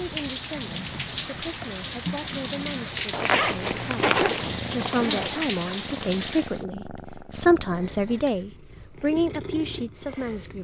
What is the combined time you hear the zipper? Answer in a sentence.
The zipper can be heard for 2 seconds in total.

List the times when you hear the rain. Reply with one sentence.
You can hear the rain from 0.0 to 6.7 s.